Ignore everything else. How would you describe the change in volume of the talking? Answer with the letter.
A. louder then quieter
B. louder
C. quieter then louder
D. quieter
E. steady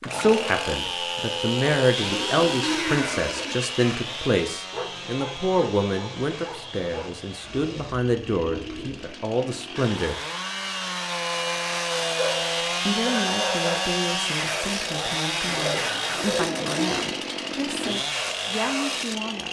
D.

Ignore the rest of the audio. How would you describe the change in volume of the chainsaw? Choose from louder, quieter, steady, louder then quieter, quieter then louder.
quieter then louder.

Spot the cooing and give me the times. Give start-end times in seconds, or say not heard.
1.9-3.6, 7.4-9.2, 15.4-17.1.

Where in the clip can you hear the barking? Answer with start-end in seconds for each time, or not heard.
4.7-7.2, 12.2-13.9.